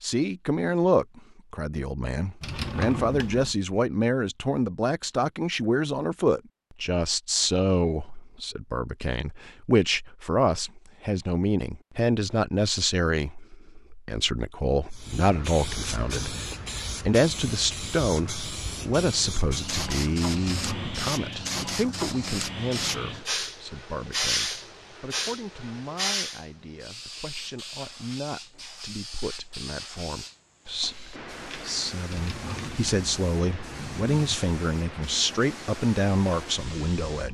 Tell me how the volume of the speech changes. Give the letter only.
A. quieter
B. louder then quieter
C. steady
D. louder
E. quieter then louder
E.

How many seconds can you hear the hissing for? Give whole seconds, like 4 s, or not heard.
22 s.